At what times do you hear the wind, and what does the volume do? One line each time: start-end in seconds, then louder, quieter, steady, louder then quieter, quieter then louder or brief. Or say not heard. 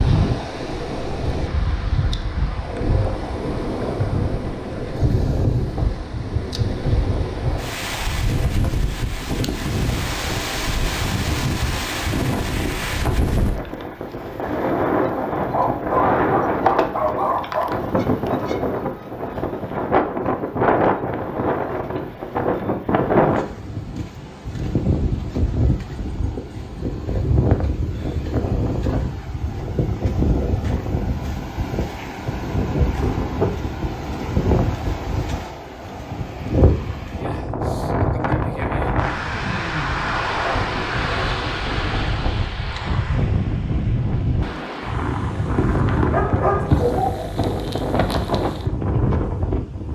0.0-49.9 steady.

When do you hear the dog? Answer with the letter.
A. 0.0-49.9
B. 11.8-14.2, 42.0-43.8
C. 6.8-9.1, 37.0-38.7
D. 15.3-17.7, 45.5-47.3
D.